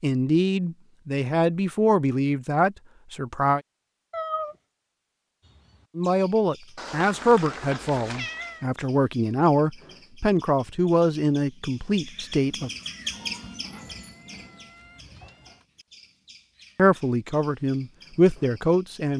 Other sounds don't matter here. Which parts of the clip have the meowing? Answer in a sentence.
The meowing can be heard from 4.1 to 4.5 s, from 6.8 to 8.7 s and from 13.1 to 15.7 s.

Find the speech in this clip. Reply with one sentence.
The speech can be heard from 0.0 to 3.6 s, from 6.0 to 12.7 s and from 16.8 to 19.1 s.